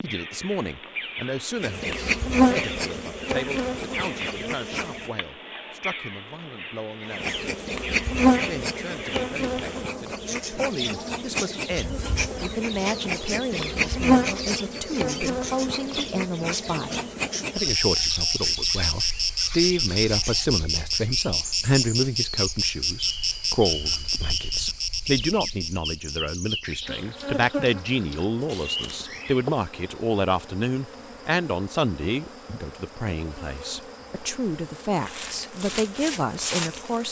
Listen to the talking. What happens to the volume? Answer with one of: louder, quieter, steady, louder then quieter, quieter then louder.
louder.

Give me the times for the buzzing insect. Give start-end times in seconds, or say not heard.
1.6-5.2, 7.0-37.0.